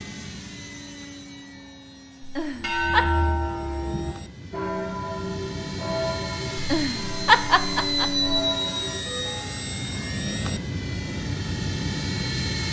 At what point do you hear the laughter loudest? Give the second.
7 s.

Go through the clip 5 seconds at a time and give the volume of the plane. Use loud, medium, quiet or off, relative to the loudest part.
quiet, loud, loud.